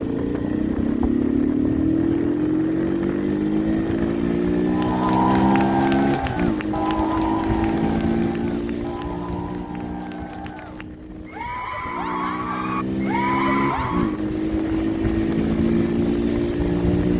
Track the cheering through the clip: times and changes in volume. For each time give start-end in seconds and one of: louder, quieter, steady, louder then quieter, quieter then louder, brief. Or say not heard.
4.7-14.2 quieter then louder.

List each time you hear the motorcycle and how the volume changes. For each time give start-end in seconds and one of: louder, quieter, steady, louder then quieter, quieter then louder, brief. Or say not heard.
0.0-17.1 quieter then louder.